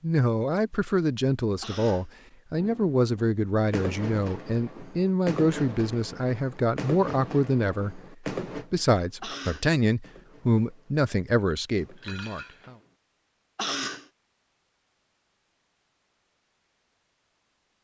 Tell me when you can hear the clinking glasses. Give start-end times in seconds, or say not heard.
11.5-12.8.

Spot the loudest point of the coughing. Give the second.
14 s.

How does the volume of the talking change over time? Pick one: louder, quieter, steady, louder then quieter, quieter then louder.
steady.